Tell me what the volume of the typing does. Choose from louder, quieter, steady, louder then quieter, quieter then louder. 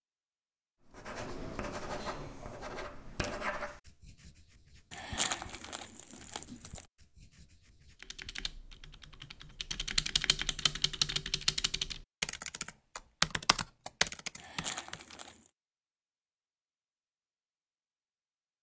louder.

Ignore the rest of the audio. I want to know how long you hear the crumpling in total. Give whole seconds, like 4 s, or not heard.
3 s.